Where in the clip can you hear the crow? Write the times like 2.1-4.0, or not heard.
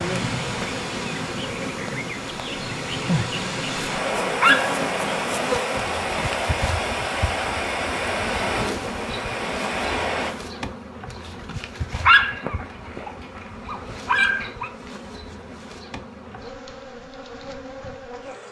not heard.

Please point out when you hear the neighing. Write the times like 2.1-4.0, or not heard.
not heard.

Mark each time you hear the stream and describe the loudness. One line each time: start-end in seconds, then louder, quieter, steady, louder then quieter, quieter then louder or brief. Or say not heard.
0.0-10.3 louder.